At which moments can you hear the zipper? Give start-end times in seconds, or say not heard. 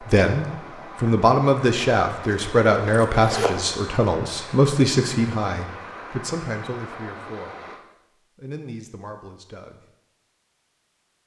2.2-3.9.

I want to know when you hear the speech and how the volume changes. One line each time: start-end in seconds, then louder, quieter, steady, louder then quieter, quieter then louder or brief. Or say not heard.
0.0-9.9 quieter.